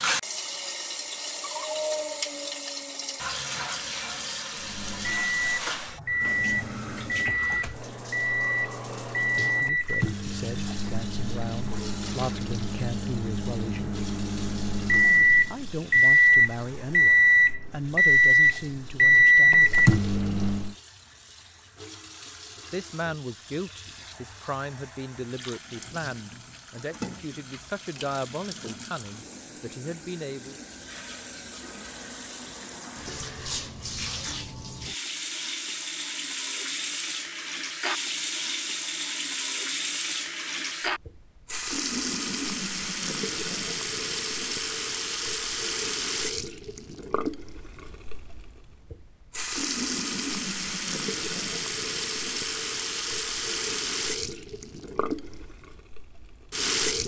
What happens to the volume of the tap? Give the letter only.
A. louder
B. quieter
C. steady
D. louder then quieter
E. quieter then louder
E.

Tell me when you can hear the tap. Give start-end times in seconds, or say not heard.
0.0-57.0.